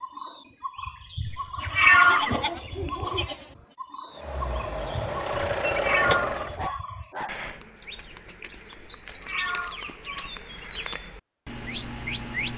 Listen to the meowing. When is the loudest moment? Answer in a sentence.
The loudest moment of the meowing is at 2 seconds.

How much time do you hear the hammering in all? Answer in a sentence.
The hammering can't be heard in this clip.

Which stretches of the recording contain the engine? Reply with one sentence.
The engine can be heard from 4.1 to 6.7 s.